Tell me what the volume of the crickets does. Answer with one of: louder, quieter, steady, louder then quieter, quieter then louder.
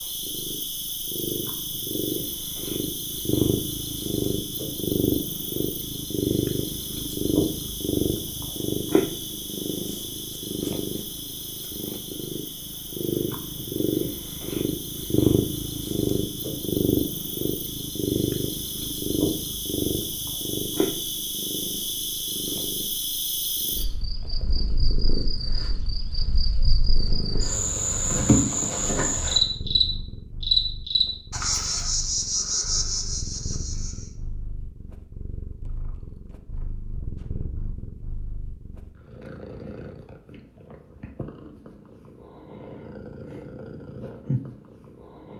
louder.